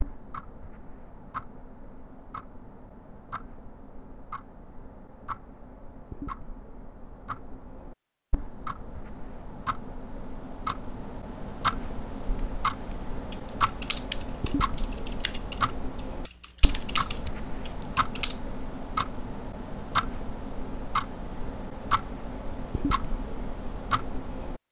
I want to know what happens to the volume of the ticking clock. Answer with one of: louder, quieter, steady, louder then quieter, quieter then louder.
louder.